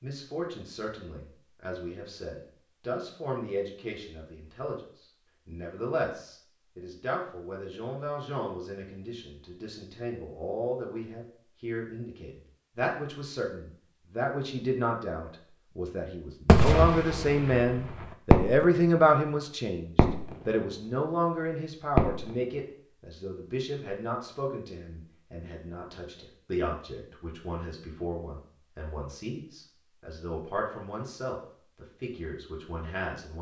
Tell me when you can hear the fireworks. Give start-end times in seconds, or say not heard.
16.4-18.6, 19.9-20.4, 21.9-22.4.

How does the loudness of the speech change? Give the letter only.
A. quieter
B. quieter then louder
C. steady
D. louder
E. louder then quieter
E.